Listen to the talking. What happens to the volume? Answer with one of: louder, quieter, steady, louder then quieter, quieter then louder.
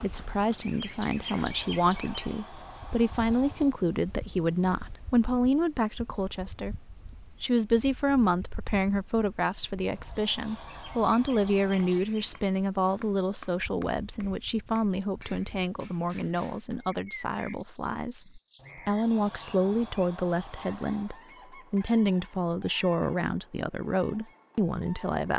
steady.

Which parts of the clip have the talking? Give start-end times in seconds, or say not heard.
0.0-25.3.